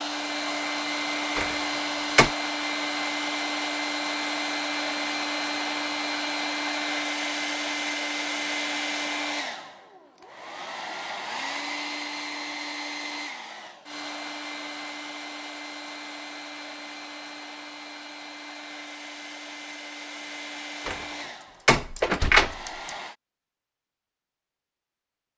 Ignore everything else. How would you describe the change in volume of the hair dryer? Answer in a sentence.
The loudness of the hair dryer goes down.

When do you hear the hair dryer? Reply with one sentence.
The hair dryer can be heard from 0.0 to 23.1 s.